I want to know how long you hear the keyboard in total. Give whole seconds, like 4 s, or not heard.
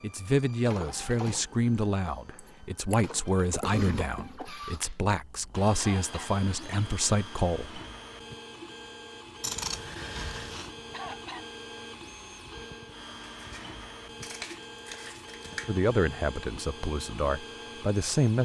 not heard.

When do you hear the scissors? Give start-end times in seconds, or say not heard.
2.4-4.3, 9.4-10.7, 13.3-15.8.